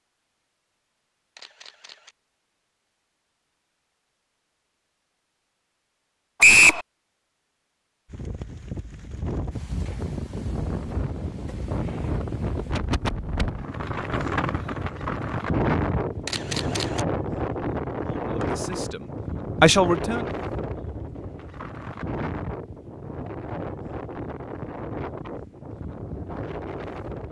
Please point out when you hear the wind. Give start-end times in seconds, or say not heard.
8.1-27.2.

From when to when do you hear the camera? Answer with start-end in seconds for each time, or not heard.
1.4-2.1, 16.2-17.1.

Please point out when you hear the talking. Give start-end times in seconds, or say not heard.
18.0-20.2.